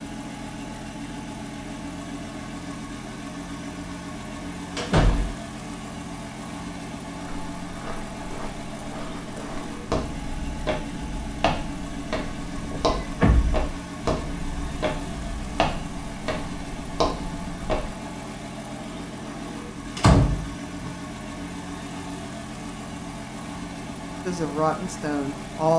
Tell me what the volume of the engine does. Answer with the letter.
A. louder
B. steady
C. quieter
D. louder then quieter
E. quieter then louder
B.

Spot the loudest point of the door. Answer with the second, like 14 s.
20 s.